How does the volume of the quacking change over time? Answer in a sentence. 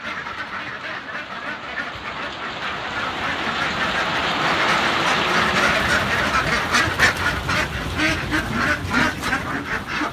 The volume of the quacking goes up.